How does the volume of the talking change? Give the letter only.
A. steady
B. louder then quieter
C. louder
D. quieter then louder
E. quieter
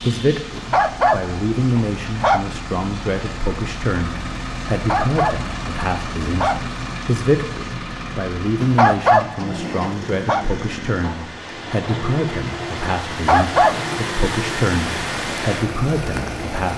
A.